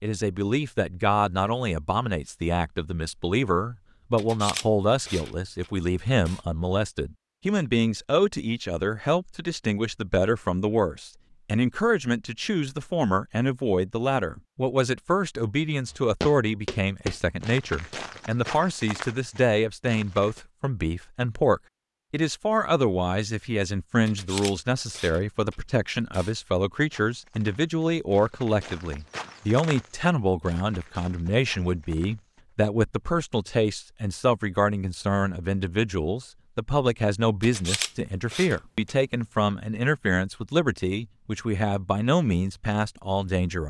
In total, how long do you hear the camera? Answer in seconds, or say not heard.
6 s.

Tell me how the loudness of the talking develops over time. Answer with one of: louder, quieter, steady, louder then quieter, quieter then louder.
steady.